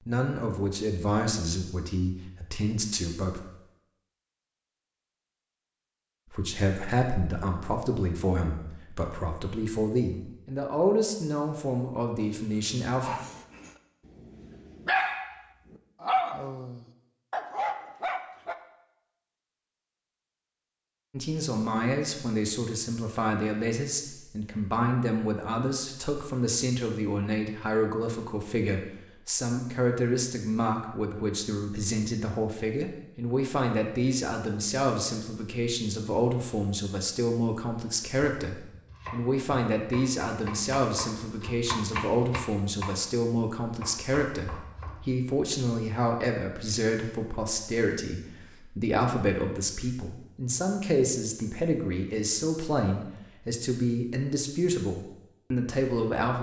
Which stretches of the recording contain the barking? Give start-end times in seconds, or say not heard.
12.3-18.6.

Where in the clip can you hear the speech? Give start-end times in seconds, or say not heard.
0.1-3.4, 6.3-13.2, 21.1-56.3.